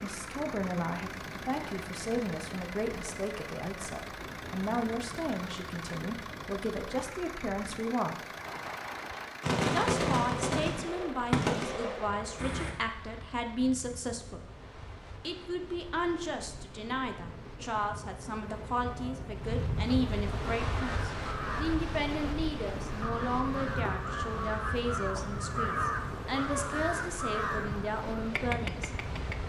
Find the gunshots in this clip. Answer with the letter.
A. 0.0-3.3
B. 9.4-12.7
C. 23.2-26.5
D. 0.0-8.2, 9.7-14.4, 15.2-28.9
B.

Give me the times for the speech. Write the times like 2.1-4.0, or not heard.
0.0-8.2, 9.7-14.4, 15.2-28.9.